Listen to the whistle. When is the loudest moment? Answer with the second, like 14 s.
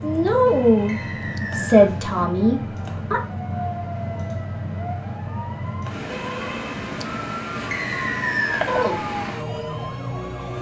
8 s.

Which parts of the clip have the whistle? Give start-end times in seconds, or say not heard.
0.8-1.9, 7.7-8.7.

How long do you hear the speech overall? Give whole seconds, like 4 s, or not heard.
4 s.